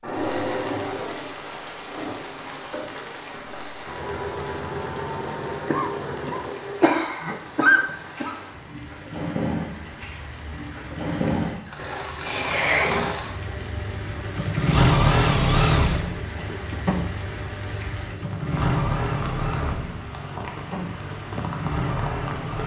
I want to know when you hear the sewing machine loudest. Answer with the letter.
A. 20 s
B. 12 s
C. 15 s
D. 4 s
C.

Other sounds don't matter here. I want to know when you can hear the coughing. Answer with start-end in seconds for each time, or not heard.
5.7-8.3, 12.2-12.9.